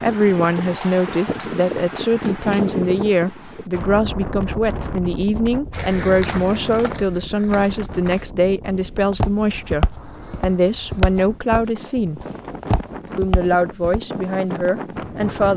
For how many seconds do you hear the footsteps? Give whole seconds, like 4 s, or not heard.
8 s.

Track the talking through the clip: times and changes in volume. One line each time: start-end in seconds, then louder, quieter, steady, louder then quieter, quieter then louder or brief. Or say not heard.
0.0-12.2 steady
13.2-15.5 brief.